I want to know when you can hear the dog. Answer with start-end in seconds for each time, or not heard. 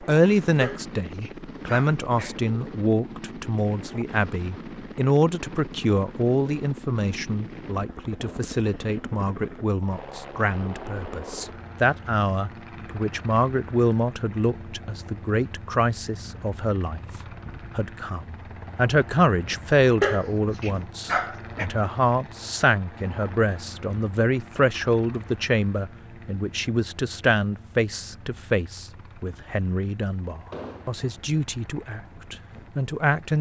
0.6-2.4, 20.0-21.7.